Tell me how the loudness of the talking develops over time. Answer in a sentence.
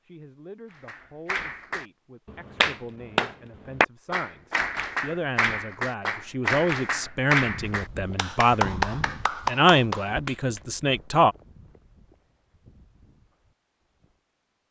The loudness of the talking goes up.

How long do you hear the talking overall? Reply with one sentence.
You can hear the talking for 11 seconds altogether.